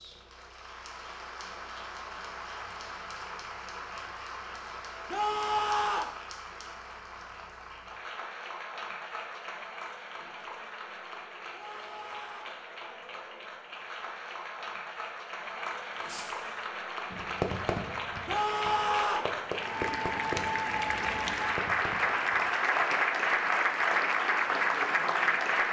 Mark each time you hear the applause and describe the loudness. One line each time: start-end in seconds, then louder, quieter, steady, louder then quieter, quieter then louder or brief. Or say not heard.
0.0-25.6 louder.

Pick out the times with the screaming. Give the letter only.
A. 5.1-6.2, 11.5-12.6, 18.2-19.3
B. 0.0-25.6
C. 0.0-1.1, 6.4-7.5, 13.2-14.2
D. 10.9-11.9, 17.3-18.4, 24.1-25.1
A.